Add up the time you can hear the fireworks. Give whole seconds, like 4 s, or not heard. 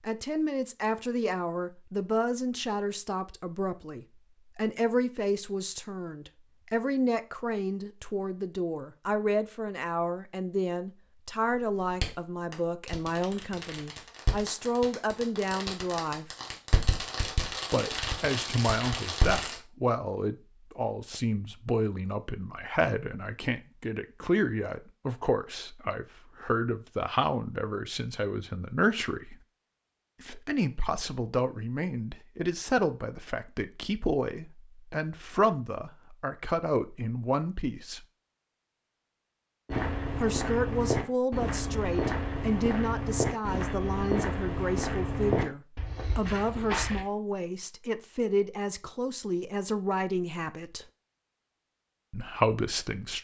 8 s.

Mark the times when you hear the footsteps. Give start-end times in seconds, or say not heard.
39.6-47.0.